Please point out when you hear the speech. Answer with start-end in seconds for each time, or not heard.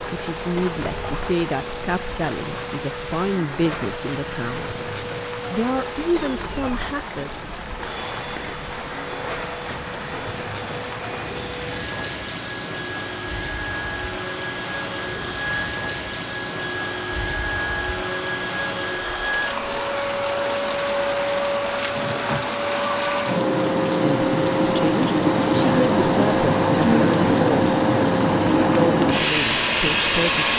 0.0-4.8, 5.5-7.3, 24.0-27.8, 28.4-30.5.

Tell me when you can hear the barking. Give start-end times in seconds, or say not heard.
not heard.